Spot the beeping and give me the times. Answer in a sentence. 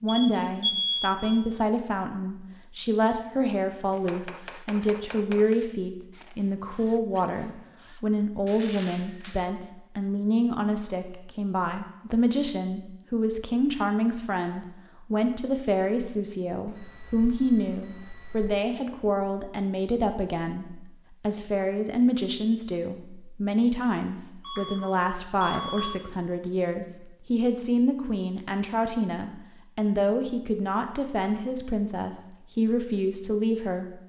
You can hear the beeping from 0.1 to 1.1 s, from 16.6 to 18.6 s and from 24.4 to 25.9 s.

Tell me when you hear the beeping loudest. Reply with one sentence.
The volume of the beeping peaks at 1 second.